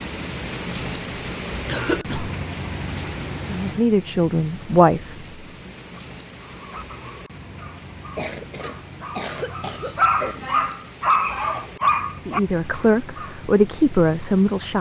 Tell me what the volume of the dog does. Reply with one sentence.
The loudness of the dog goes up.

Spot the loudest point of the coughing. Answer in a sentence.
The volume of the coughing peaks at 2 seconds.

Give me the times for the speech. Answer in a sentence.
You can hear the speech from 3.5 to 5.7 s and from 12.2 to 14.7 s.